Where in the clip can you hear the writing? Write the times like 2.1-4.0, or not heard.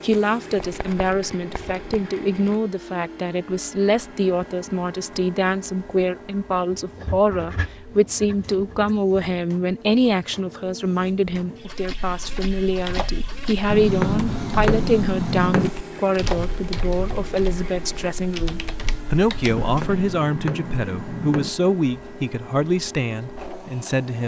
0.6-2.0, 6.7-9.2, 13.7-15.7, 19.5-21.5.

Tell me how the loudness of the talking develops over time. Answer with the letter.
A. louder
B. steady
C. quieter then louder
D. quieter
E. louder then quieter
B.